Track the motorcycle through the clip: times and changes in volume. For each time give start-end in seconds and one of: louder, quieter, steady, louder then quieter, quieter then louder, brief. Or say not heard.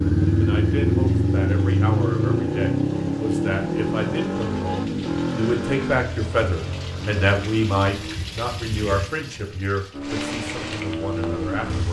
0.0-8.2 quieter
9.9-11.8 brief.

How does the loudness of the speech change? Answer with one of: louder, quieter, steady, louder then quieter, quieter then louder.
louder then quieter.